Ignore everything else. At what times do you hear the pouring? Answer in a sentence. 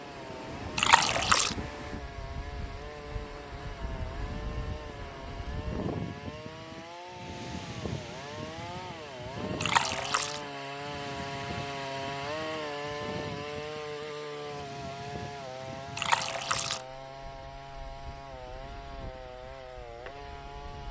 The pouring can be heard from 0.8 to 1.6 s, from 9.6 to 10.4 s and from 15.9 to 16.8 s.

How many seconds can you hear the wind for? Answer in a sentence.
The wind can be heard for 21 seconds in total.